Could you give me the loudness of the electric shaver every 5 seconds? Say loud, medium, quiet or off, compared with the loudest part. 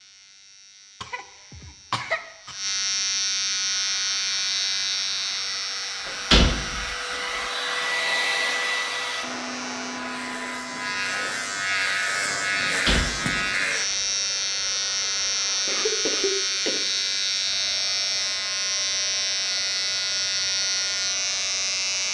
loud, medium, loud, loud, loud.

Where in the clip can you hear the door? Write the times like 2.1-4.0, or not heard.
6.0-7.4, 12.8-13.9.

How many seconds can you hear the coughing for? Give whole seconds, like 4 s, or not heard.
3 s.